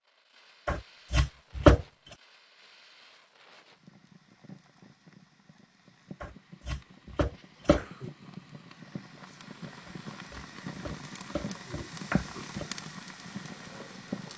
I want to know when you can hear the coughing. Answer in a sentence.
The coughing can be heard from 7.4 to 8.1 s.